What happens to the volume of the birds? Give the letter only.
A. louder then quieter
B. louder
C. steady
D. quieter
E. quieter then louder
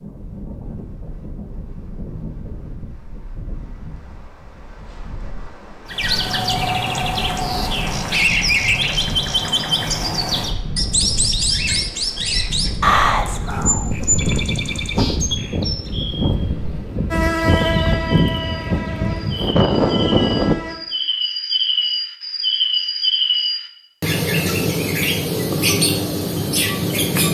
E.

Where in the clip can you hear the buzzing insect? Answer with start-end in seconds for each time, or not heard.
17.1-20.8.